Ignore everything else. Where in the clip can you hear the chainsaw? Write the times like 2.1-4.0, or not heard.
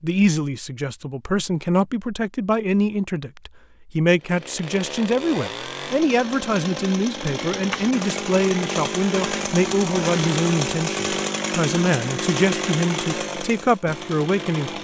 4.2-14.7.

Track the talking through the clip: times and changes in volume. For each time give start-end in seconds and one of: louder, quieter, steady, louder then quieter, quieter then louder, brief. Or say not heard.
0.0-14.7 steady.